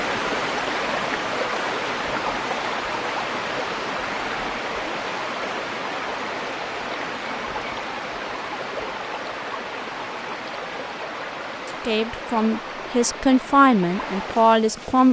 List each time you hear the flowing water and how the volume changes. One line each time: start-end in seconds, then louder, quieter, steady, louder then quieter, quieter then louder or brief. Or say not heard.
0.0-15.0 quieter.